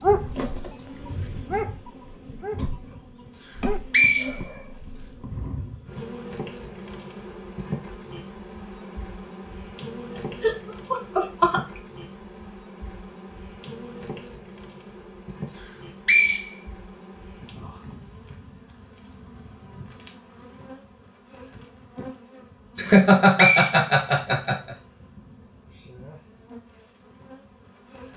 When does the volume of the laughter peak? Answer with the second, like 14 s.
23 s.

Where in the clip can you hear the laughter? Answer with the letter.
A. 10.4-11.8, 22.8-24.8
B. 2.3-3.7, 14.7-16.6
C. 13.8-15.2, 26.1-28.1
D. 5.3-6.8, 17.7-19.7
A.